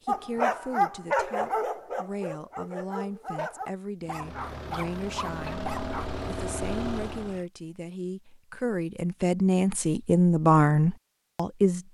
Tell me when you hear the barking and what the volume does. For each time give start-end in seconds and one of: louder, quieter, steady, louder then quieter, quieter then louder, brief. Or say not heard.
0.1-6.1 quieter.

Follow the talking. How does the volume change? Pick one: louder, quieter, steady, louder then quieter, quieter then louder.
louder.